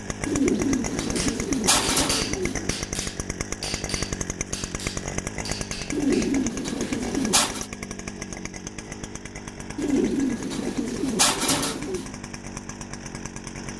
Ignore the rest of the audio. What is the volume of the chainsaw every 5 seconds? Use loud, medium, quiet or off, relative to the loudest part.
loud, loud, medium.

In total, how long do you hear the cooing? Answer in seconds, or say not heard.
7 s.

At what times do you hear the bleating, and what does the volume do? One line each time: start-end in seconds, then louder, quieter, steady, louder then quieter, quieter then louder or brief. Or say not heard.
not heard.